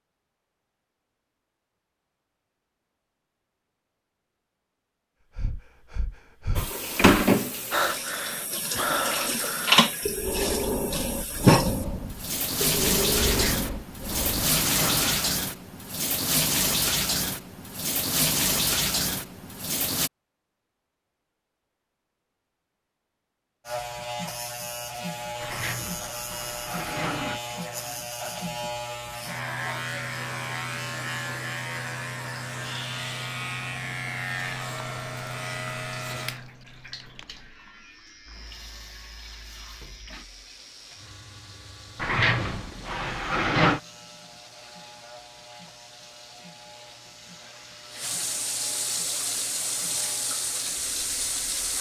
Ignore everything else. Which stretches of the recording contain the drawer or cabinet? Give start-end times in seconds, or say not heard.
13.2-15.3, 25.4-27.4, 42.0-43.8.